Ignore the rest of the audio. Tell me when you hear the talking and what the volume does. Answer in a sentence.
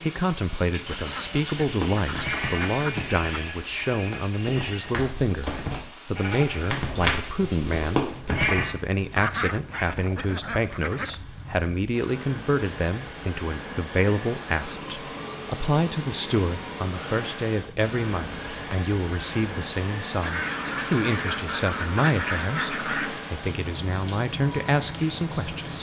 The talking can be heard from 0.0 to 25.7 s, at a steady volume.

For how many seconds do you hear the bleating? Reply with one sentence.
The bleating can be heard for 7 seconds in total.